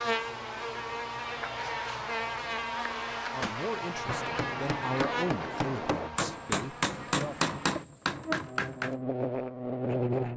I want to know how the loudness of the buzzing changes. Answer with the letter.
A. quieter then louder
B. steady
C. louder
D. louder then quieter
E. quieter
A.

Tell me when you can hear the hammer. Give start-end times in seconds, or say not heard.
3.3-9.0.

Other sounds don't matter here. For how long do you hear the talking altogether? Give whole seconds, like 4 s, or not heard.
4 s.